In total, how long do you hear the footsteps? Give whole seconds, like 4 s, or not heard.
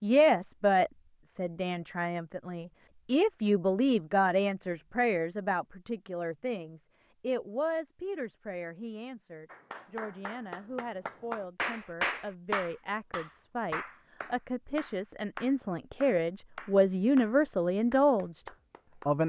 not heard.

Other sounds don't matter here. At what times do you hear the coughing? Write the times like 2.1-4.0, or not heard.
not heard.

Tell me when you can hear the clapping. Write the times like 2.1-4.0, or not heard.
9.4-19.2.